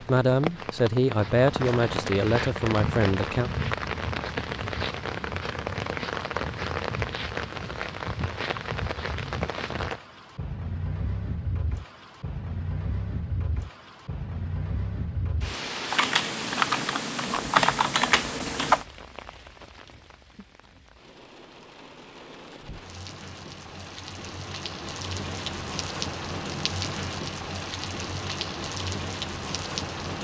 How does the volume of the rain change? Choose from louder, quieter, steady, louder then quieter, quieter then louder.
quieter then louder.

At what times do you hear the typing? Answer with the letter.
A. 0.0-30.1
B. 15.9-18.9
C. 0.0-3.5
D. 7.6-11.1
B.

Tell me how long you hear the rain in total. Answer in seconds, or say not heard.
30 s.